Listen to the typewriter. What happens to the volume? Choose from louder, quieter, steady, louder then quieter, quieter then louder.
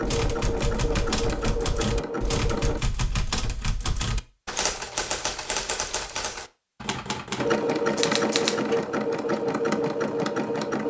steady.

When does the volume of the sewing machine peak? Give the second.
8 s.